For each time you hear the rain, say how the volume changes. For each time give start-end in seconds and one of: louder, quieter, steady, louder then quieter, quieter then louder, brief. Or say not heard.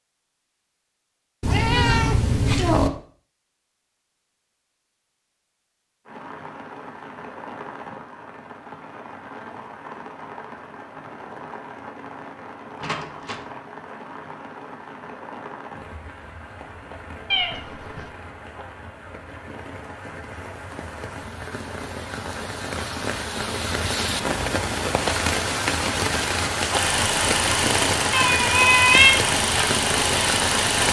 6.0-30.8 louder.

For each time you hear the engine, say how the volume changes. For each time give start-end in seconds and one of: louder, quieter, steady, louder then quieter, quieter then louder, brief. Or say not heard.
26.7-30.8 steady.